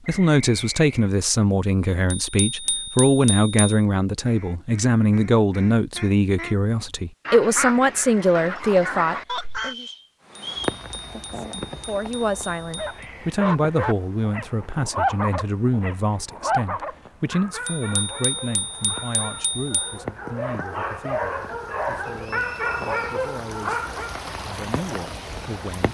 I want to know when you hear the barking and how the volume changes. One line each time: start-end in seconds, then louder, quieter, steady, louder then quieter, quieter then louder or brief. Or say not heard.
12.8-24.2 quieter then louder.